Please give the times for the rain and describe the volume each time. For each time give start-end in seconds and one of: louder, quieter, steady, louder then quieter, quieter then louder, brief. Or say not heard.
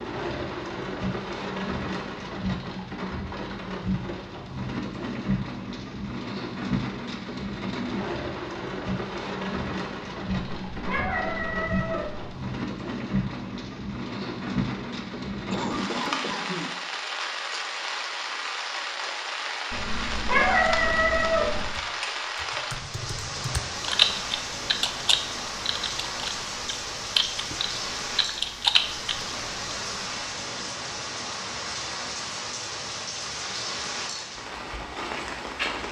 0.0-35.8 steady.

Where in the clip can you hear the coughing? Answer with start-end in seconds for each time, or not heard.
15.5-16.8.